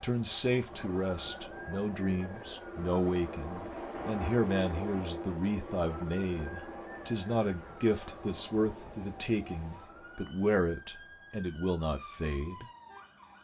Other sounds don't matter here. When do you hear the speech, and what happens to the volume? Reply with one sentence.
The speech can be heard from 0.0 to 12.7 s, at a steady volume.